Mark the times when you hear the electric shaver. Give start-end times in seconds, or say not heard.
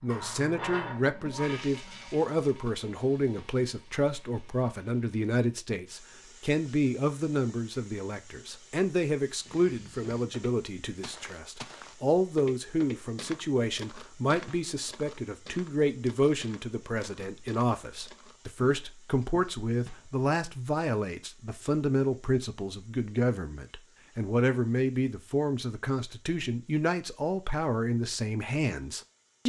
not heard.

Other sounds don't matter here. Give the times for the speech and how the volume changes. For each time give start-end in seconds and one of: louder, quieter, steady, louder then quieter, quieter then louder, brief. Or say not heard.
0.0-29.4 steady.